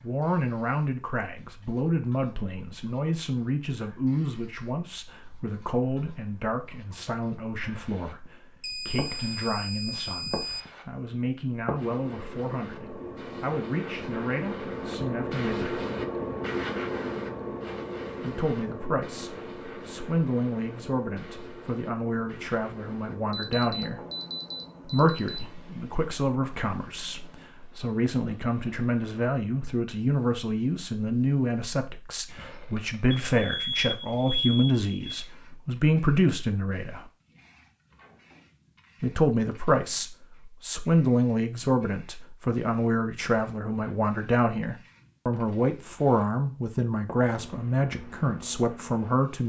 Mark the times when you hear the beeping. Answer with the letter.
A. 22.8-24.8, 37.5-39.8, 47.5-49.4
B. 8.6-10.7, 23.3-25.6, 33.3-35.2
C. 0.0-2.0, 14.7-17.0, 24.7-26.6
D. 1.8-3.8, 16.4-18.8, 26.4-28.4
B.